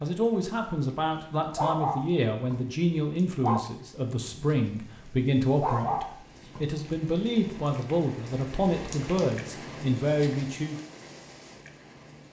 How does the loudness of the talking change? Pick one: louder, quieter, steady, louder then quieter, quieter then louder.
steady.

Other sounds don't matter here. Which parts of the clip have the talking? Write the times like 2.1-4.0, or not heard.
0.0-10.8.